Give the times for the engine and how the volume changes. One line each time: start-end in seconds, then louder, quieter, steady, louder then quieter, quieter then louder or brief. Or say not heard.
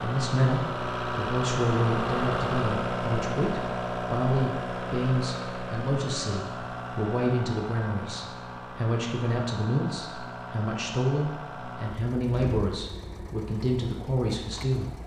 0.0-15.0 quieter.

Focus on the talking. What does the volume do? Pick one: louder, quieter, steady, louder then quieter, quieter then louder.
steady.